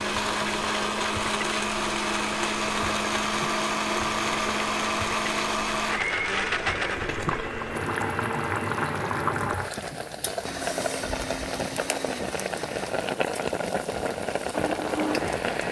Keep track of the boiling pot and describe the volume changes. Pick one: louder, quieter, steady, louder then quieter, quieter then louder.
louder.